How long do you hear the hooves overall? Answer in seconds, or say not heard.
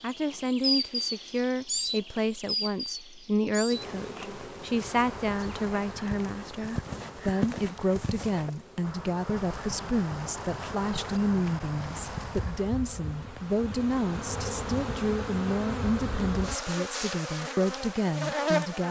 8 s.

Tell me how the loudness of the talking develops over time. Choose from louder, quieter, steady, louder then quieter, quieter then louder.
steady.